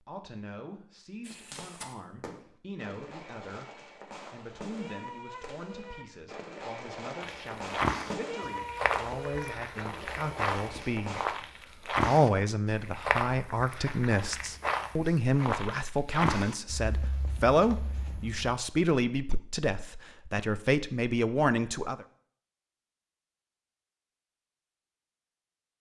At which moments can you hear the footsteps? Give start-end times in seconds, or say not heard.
7.2-18.6.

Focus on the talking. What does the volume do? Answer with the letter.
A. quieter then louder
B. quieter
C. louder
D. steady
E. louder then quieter
C.